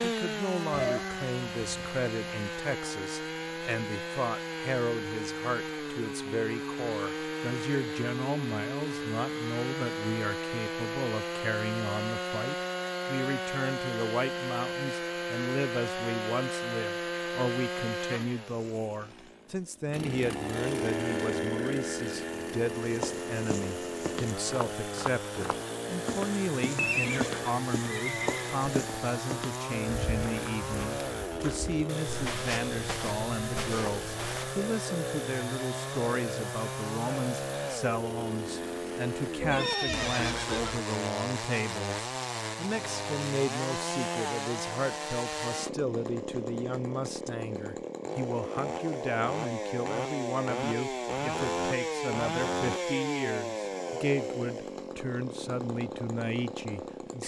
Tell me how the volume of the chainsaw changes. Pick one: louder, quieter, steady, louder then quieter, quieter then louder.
steady.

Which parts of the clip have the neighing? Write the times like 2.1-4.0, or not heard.
0.7-2.0, 26.8-28.6, 39.4-40.8.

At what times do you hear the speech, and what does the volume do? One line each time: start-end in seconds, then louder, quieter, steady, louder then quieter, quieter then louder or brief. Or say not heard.
0.0-57.2 steady.